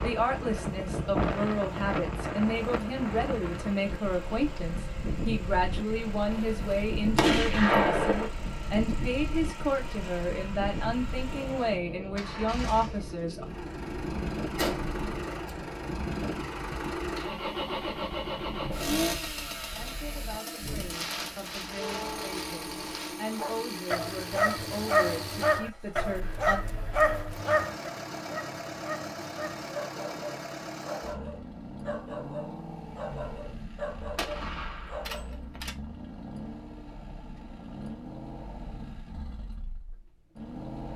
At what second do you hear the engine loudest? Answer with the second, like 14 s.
19 s.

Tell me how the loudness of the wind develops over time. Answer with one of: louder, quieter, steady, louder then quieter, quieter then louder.
quieter.